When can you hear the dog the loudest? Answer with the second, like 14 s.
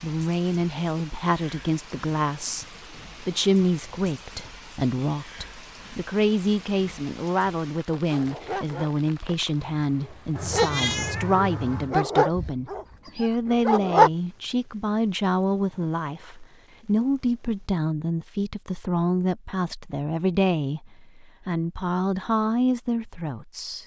14 s.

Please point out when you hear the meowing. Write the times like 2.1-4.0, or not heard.
10.3-11.9.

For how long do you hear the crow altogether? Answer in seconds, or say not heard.
not heard.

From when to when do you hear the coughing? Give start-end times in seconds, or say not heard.
not heard.